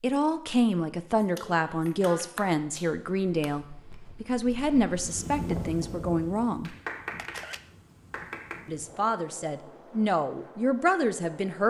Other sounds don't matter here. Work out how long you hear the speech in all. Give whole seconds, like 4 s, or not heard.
10 s.